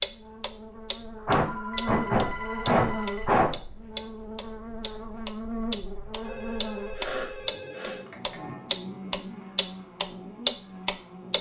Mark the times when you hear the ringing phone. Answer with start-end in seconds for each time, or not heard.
1.4-3.3, 6.2-8.2.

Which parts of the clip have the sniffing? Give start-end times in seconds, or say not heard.
1.2-3.5, 7.0-8.3.